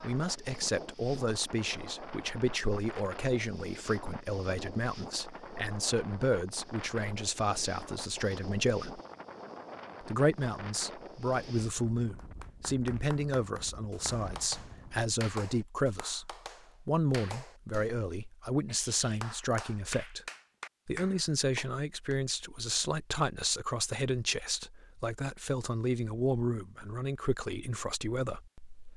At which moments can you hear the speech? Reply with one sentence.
The speech can be heard from 0.0 to 9.0 s, from 10.0 to 20.2 s and from 20.9 to 28.9 s.